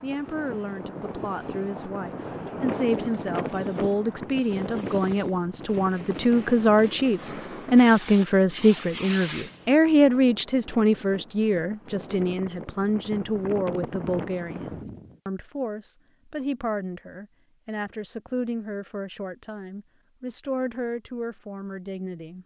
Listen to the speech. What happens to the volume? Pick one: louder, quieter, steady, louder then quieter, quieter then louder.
louder then quieter.